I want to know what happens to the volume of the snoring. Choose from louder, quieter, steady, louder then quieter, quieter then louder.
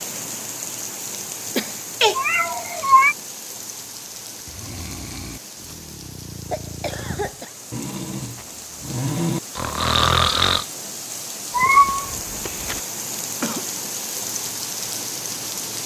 louder.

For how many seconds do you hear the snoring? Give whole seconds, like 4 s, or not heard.
6 s.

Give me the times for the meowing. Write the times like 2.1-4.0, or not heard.
2.0-3.1, 11.5-12.8.